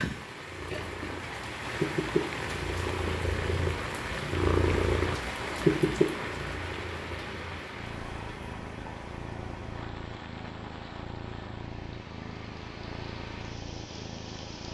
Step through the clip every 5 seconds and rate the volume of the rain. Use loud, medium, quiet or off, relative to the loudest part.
loud, loud, medium.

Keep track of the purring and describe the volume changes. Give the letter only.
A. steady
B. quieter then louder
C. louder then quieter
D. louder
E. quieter
C.